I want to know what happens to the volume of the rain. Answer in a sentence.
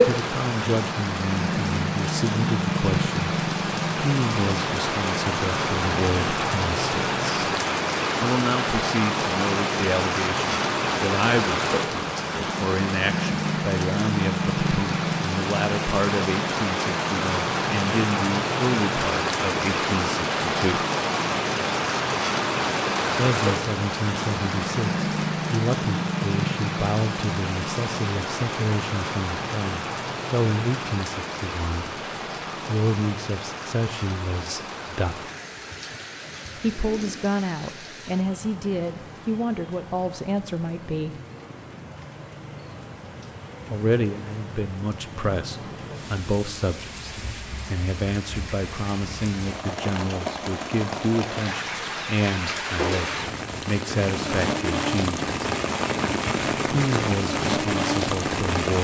The volume of the rain goes down, then up.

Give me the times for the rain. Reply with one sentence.
The rain can be heard from 0.0 to 58.7 s.